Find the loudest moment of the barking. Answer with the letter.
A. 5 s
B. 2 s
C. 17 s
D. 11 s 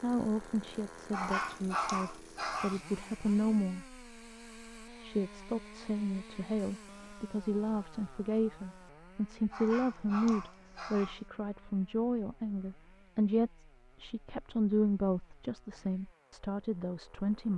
B.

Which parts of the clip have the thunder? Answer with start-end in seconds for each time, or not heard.
not heard.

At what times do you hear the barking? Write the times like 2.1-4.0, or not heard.
1.1-2.8, 9.5-11.2.